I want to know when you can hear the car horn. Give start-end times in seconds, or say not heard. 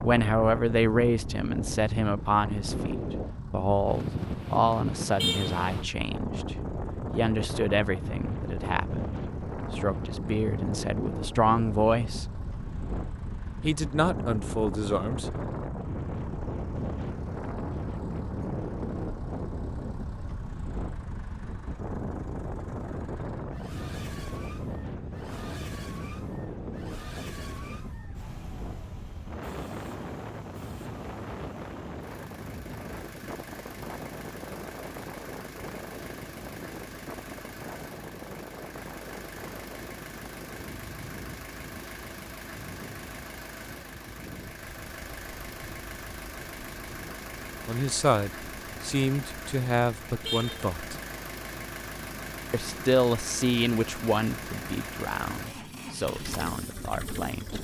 5.2-5.7, 50.2-50.7.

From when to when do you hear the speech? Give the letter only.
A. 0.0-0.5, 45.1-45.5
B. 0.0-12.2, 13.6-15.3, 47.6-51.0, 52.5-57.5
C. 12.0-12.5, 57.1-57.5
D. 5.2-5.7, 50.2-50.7
B.